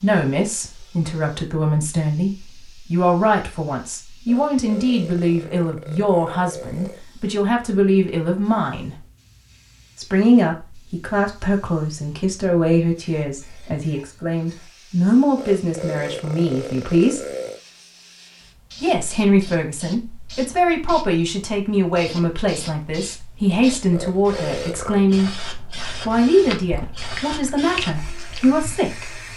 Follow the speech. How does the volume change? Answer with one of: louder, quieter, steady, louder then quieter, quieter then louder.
steady.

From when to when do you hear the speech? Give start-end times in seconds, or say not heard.
0.0-9.0, 9.9-17.2, 18.8-29.1.